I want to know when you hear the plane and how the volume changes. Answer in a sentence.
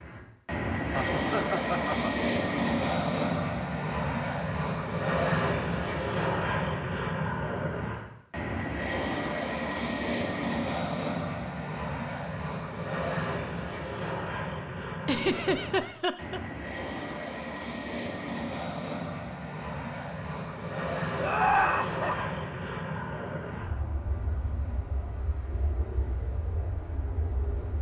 You can hear the plane from 0.0 to 27.7 s, getting quieter.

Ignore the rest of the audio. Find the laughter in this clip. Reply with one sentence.
You can hear the laughter from 0.9 to 2.1 s, from 15.1 to 16.4 s and from 21.1 to 22.2 s.